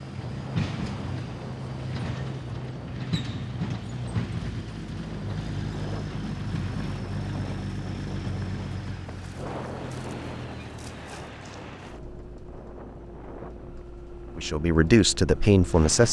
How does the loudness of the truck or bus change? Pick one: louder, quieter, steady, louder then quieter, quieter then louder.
quieter.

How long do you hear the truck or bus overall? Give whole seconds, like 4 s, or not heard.
16 s.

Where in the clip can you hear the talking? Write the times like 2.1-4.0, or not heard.
14.3-16.0.